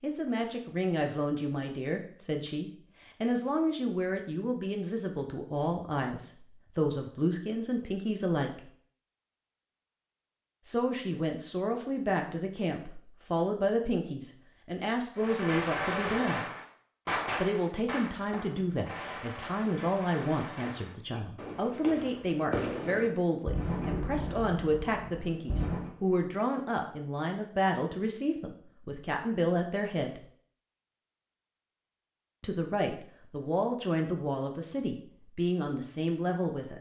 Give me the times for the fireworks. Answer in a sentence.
You can hear the fireworks from 15.2 to 25.9 s.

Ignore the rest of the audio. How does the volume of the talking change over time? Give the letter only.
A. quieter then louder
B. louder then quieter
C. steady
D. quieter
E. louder
C.